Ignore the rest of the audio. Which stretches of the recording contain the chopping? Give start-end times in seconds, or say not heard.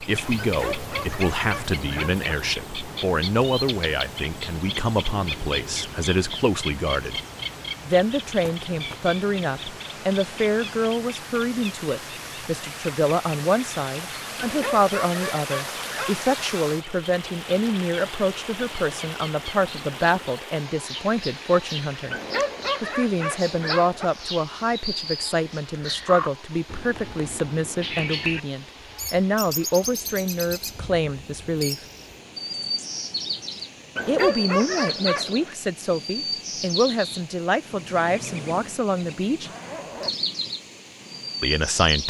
not heard.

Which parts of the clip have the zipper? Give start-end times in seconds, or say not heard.
39.4-40.2.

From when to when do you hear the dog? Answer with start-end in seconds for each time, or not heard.
0.4-2.2, 14.3-16.3, 22.1-24.1, 34.0-35.5.